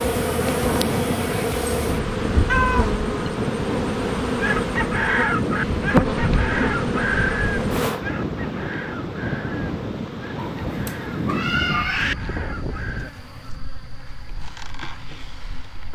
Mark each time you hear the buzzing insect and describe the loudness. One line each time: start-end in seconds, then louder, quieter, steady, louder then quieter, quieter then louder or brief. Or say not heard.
0.0-15.8 quieter.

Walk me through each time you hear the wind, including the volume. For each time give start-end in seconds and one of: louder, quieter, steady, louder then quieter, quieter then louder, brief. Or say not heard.
0.0-15.8 quieter.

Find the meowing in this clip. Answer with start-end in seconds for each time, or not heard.
2.5-3.3, 10.3-12.2.